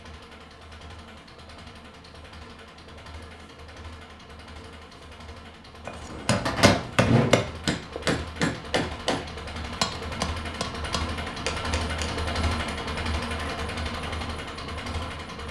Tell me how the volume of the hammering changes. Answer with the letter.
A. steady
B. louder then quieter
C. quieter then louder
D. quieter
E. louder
D.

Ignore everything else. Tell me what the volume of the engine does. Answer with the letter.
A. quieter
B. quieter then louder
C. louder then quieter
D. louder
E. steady
D.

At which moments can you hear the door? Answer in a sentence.
The door can be heard from 6.3 to 8.0 s.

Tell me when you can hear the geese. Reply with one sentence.
The geese can't be heard in this clip.